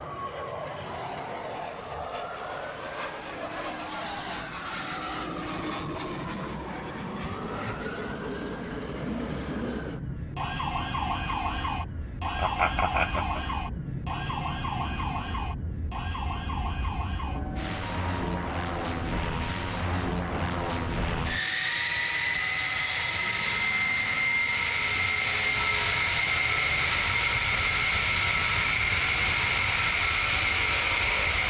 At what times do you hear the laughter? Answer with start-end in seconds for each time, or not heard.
12.3-13.4.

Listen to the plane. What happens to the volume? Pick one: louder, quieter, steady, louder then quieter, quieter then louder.
louder.